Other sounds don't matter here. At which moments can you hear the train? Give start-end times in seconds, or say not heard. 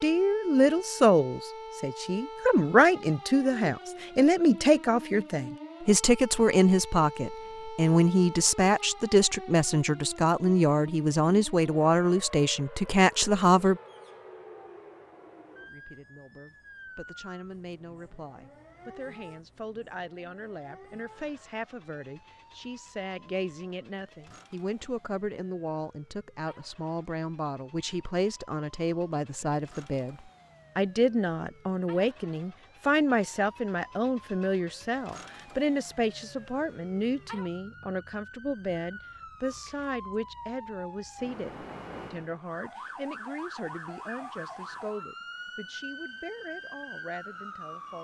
not heard.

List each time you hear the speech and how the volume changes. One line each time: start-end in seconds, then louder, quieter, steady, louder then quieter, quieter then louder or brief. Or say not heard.
0.0-13.8 steady
15.7-47.9 louder then quieter.